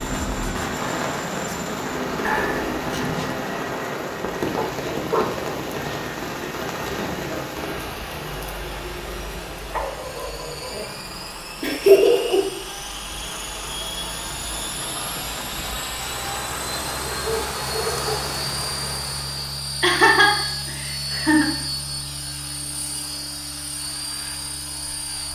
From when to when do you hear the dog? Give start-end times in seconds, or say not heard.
4.5-5.3, 9.7-10.8, 17.1-18.3.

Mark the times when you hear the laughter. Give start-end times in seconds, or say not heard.
2.2-3.0, 11.6-12.4, 19.8-21.5.